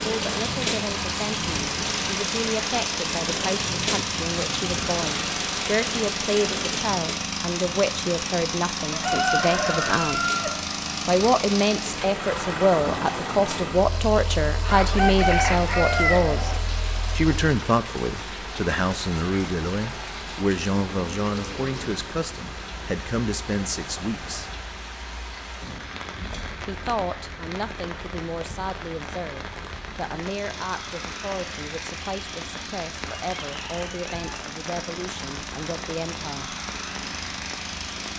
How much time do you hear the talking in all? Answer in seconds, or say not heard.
33 s.